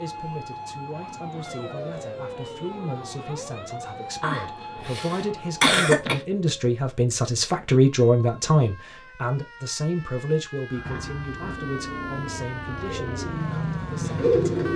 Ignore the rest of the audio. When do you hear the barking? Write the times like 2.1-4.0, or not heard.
not heard.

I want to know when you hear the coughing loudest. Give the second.
6 s.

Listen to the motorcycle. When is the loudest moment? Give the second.
14 s.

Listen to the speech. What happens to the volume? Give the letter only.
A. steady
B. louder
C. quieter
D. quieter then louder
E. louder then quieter
E.